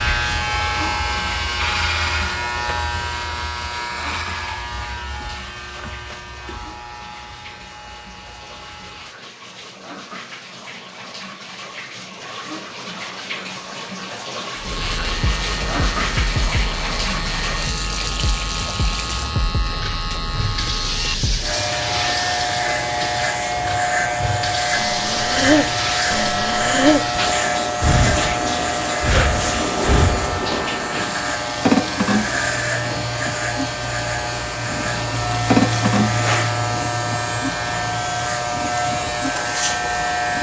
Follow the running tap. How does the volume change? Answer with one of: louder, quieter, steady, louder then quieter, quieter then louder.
louder.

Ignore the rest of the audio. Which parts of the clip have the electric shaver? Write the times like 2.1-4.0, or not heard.
0.0-9.2, 14.6-40.3.